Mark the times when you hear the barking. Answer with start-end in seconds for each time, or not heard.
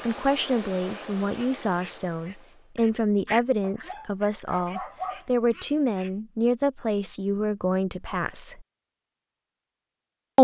3.6-5.2.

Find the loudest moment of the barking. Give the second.
5 s.